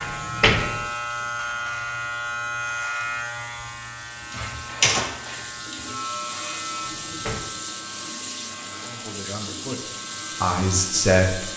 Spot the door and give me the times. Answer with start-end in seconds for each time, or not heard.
0.0-0.9, 6.8-7.5.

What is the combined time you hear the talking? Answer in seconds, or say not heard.
3 s.